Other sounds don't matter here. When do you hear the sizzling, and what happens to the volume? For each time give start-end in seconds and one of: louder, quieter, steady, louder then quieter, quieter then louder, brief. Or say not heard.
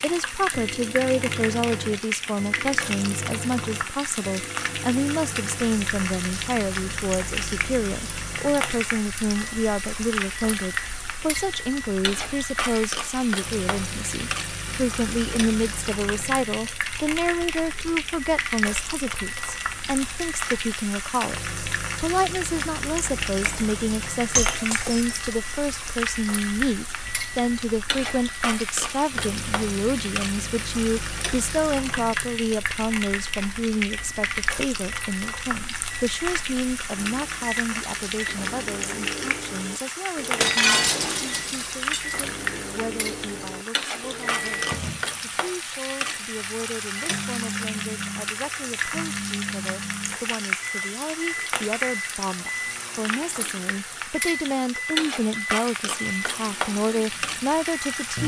0.0-58.2 steady.